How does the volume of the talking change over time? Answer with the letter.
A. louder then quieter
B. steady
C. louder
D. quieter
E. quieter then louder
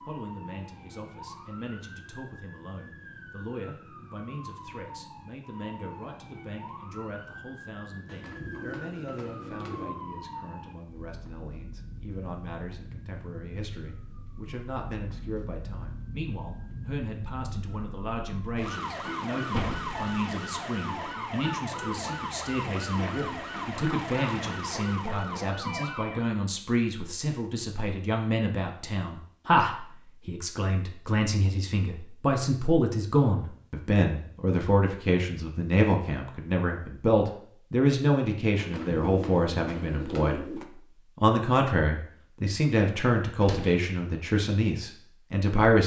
C.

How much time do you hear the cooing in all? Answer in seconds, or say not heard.
4 s.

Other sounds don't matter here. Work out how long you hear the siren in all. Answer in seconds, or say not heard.
26 s.